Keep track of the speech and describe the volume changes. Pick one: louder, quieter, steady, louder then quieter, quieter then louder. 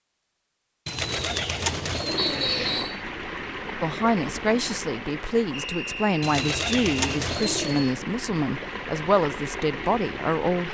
steady.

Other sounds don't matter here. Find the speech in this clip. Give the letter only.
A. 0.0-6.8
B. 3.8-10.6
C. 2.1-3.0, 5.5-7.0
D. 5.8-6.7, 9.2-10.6
B.